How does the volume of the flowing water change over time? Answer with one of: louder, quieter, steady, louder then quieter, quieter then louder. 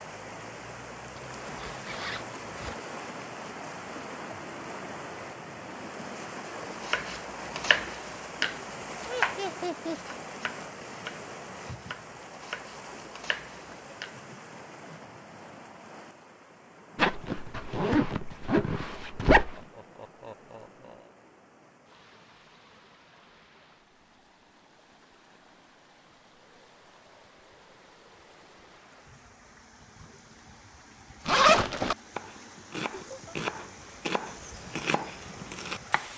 quieter then louder.